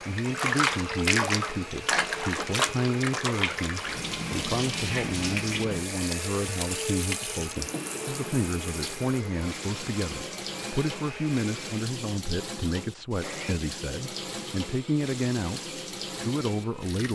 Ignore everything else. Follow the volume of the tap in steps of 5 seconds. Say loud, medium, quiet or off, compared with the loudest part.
loud, medium, medium, medium.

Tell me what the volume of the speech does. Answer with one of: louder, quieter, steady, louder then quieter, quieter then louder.
steady.